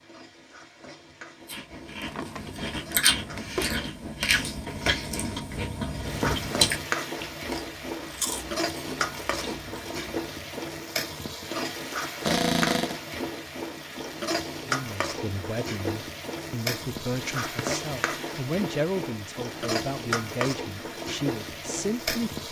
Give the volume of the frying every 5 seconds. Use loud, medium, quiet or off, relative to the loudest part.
quiet, loud, loud, loud, loud.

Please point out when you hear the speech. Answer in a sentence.
The speech can be heard from 14.7 to 22.4 s.